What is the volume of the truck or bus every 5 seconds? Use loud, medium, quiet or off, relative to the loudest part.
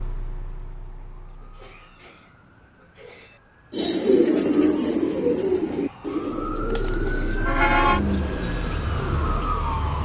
quiet, loud.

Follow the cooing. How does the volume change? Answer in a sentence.
The volume of the cooing goes down.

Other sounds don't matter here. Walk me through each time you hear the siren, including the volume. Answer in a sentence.
You can hear the siren from 0.0 to 10.0 s, getting louder.